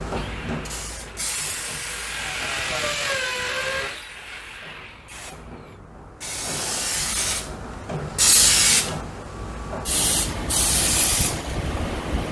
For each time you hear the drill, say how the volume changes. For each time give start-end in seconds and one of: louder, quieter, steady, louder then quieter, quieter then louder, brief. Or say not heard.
0.0-5.8 louder then quieter.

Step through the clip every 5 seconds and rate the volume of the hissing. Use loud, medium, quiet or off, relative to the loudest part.
medium, loud, loud.